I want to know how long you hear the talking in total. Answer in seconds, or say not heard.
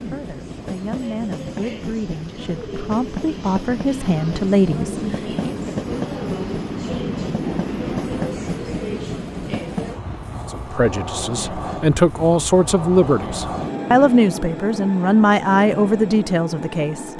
12 s.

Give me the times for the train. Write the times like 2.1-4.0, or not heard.
0.0-17.1.